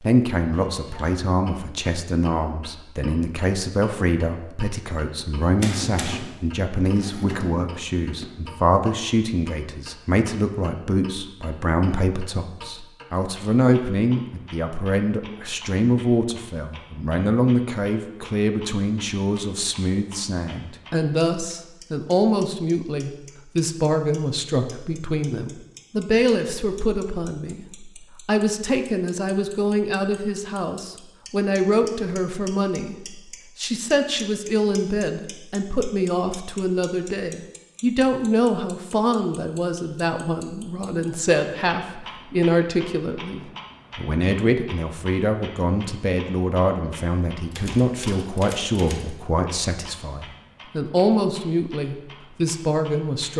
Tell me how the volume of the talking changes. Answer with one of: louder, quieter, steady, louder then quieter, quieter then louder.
steady.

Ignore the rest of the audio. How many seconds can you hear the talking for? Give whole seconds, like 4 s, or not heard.
53 s.